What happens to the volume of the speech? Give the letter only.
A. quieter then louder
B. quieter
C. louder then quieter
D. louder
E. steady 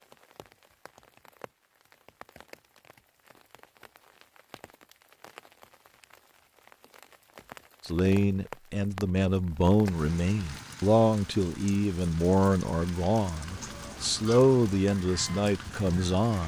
E.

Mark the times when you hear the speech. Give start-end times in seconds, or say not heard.
7.8-16.4.